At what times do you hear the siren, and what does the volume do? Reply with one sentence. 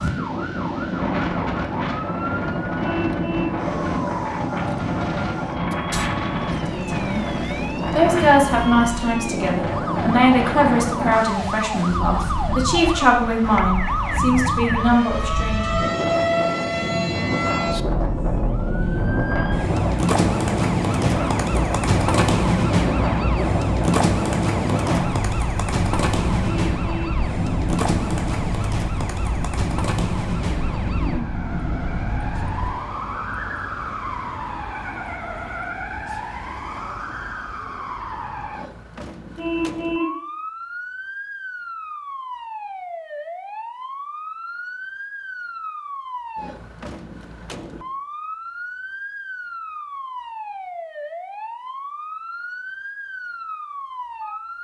The siren can be heard from 0.0 to 54.6 s, getting louder then quieter.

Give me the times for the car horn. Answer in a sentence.
You can hear the car horn from 2.8 to 3.6 s, from 26.4 to 27.2 s and from 39.4 to 40.2 s.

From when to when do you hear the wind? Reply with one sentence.
The wind can be heard from 0.0 to 32.7 s.